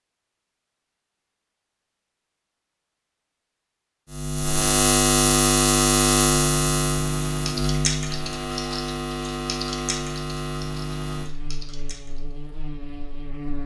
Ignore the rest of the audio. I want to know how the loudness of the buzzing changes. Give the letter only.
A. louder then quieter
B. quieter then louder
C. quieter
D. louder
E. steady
C.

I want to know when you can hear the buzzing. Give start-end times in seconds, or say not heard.
4.1-13.6.